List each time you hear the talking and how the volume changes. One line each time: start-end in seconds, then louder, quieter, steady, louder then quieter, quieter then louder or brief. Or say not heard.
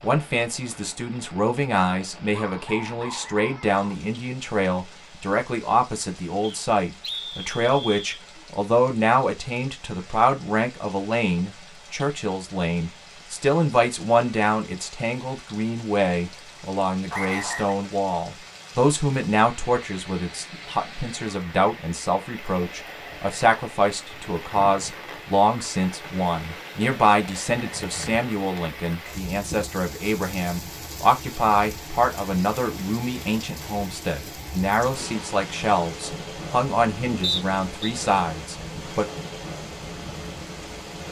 0.0-39.0 steady.